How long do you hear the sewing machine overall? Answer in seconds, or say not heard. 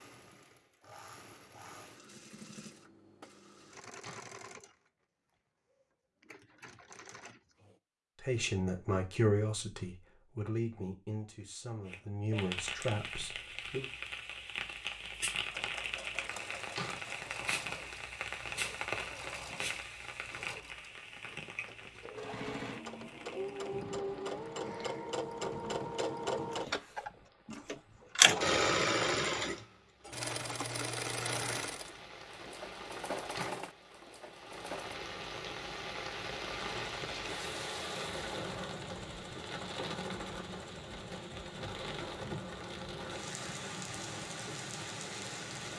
36 s.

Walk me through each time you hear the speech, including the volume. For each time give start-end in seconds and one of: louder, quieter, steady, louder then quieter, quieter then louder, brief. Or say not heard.
8.2-13.8 quieter.